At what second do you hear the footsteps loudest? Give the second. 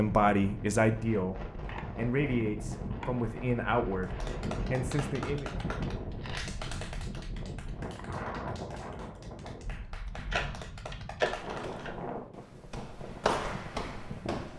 13 s.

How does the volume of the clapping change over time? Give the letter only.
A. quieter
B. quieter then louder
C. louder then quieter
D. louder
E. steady
B.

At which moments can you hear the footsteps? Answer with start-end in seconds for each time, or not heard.
11.4-14.5.